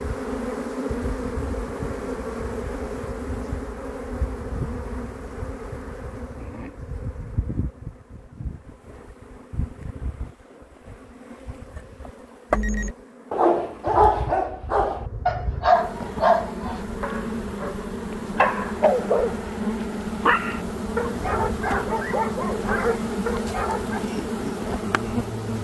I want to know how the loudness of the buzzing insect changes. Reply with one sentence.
The loudness of the buzzing insect goes down, then up.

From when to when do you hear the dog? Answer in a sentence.
You can hear the dog from 12.5 to 24.1 s.